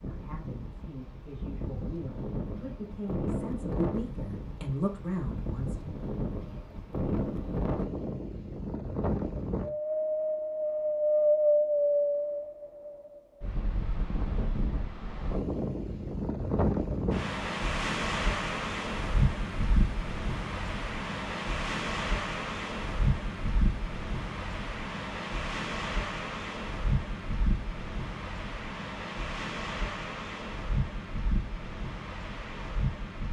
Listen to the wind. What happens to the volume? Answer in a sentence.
The loudness of the wind goes up, then down.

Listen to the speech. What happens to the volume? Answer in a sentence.
The loudness of the speech goes up.